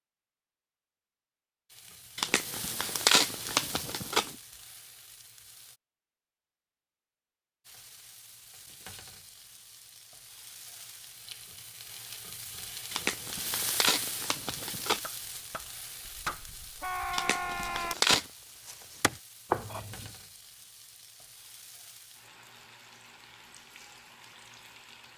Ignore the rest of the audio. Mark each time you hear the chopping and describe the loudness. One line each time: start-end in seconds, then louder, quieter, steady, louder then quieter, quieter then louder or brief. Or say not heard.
15.0-20.1 louder.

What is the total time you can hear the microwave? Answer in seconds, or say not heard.
not heard.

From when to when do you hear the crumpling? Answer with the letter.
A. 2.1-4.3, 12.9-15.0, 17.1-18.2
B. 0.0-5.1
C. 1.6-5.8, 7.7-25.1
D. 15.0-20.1
A.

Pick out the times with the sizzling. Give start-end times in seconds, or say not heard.
1.6-5.8, 7.7-25.1.